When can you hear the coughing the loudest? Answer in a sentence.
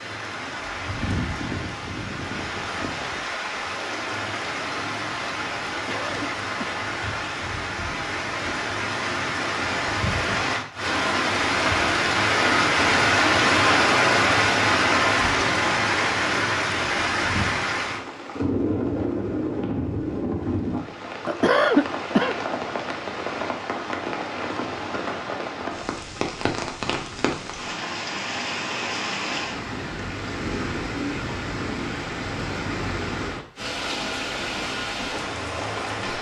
The loudest moment of the coughing is at 22 seconds.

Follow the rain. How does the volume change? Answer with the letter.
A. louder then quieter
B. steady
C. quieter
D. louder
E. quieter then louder
A.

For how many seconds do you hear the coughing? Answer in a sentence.
The coughing can be heard for 2 seconds in total.